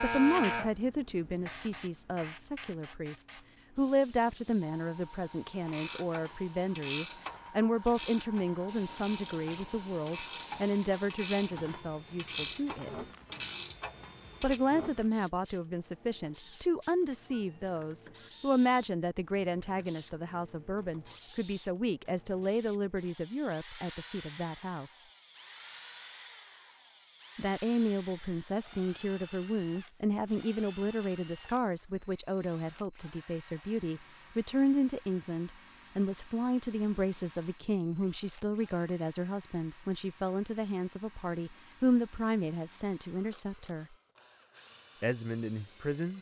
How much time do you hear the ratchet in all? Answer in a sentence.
The ratchet can be heard for 9 seconds in total.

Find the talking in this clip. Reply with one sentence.
The talking can be heard from 0.0 to 13.1 s, from 14.4 to 25.1 s, from 27.4 to 44.0 s and from 45.0 to 46.1 s.